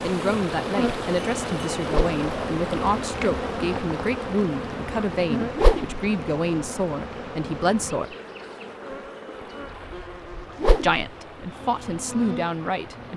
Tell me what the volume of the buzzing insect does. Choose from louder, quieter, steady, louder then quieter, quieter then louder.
quieter.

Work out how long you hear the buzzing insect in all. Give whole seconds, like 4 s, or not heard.
13 s.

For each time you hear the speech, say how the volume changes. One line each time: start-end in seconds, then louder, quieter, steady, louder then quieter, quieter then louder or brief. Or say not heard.
0.0-8.2 steady
10.7-13.1 brief.